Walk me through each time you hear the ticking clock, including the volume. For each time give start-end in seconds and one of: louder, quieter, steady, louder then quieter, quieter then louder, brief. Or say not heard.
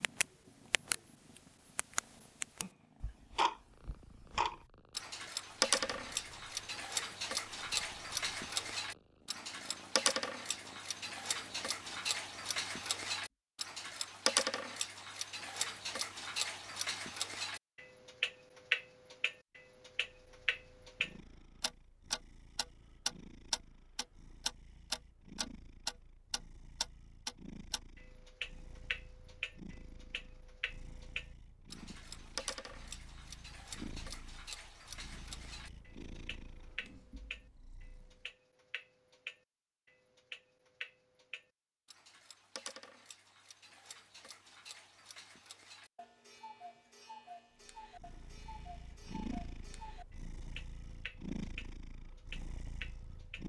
0.0-0.9 brief
1.8-53.4 quieter.